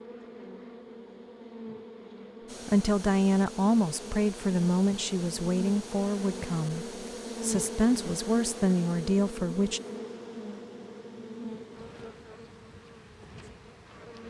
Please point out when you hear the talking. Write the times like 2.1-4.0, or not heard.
2.6-9.8.